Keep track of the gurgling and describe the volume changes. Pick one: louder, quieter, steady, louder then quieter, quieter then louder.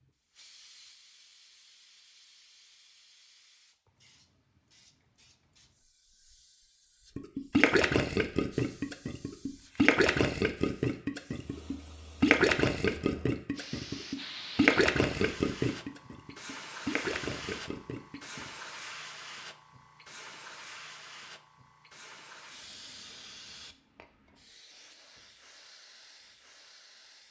quieter.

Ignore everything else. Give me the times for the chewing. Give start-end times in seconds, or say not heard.
not heard.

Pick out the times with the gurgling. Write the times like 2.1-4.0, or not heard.
7.2-18.5.